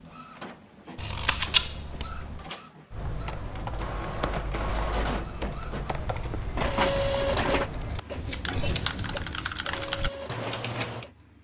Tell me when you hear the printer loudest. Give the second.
7 s.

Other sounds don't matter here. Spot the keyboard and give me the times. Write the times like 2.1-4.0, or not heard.
2.9-11.1.